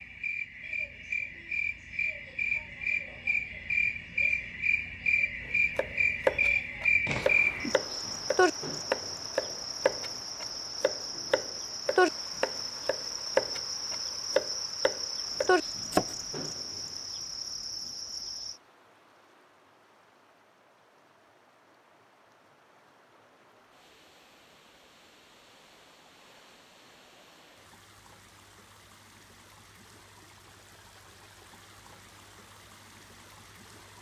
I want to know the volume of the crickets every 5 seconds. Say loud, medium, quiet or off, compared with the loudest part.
loud, loud, medium, medium, off, off, off.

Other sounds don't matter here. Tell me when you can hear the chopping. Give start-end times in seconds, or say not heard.
5.8-16.1.